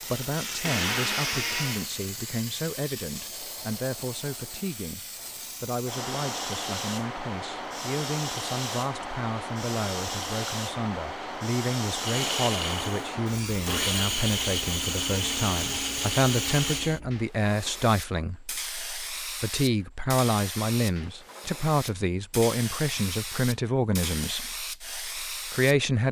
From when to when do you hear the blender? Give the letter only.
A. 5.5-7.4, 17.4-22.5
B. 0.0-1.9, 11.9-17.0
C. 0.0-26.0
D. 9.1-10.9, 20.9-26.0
B.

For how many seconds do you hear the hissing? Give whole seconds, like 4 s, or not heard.
26 s.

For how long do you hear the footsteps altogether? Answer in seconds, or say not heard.
not heard.